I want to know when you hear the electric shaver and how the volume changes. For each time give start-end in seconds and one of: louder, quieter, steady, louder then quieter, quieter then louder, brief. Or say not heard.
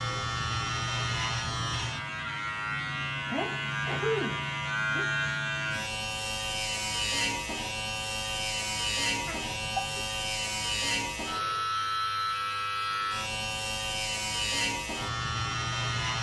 0.0-16.1 steady.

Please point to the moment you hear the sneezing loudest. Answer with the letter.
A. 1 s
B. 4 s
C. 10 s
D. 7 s
B.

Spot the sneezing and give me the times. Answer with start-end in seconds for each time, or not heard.
3.2-5.2, 9.2-10.1.